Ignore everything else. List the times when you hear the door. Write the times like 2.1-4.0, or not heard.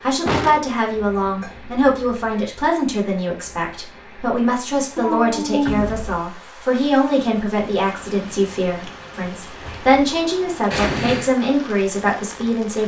0.2-1.1, 5.7-6.2, 9.4-9.9.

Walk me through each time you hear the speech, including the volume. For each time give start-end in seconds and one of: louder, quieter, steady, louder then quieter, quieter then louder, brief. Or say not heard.
0.0-12.8 steady.